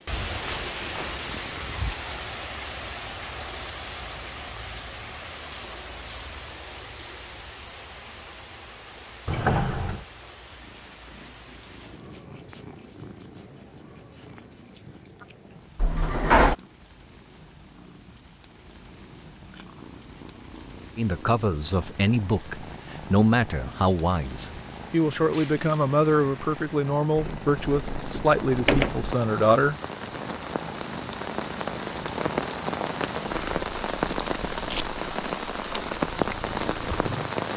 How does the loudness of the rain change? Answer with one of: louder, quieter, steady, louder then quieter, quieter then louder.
quieter then louder.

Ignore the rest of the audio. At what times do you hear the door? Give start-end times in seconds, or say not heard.
9.2-10.1, 15.8-16.6, 27.1-29.1.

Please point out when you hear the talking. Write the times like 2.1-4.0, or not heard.
20.9-29.8.